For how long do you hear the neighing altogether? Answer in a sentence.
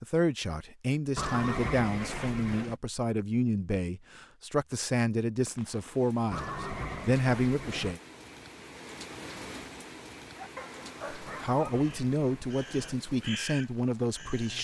You can hear the neighing for 5 seconds altogether.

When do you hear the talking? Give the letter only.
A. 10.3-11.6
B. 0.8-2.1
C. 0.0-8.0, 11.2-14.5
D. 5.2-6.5
C.